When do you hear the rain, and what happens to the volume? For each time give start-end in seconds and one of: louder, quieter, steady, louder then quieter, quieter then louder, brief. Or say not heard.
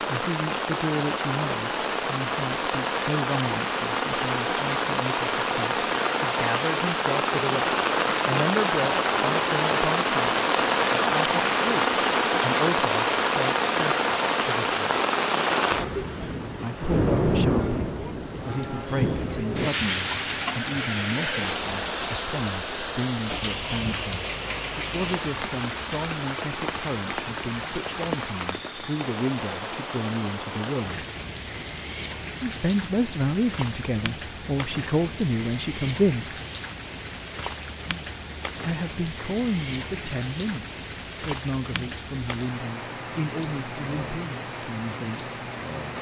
0.0-45.9 quieter.